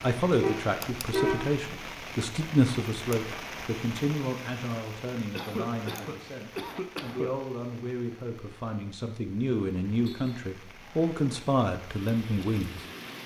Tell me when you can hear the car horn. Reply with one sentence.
The car horn can be heard from 0.3 to 1.6 s and from 10.0 to 10.4 s.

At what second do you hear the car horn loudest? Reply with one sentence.
The loudest moment of the car horn is at 1 second.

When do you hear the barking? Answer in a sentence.
You can't hear the barking here.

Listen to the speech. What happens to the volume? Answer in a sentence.
The volume of the speech goes down, then up.